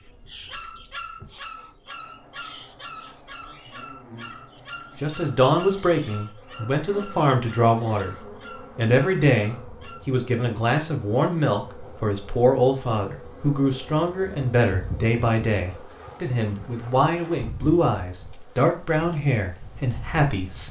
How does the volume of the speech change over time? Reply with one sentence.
The volume of the speech stays about the same.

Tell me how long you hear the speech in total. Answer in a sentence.
The speech can be heard for 16 seconds in total.